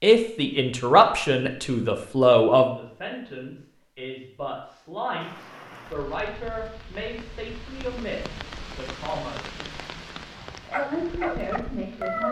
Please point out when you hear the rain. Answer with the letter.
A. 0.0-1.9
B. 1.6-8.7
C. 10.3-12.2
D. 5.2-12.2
D.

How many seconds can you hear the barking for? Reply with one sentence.
You can hear the barking for 2 seconds altogether.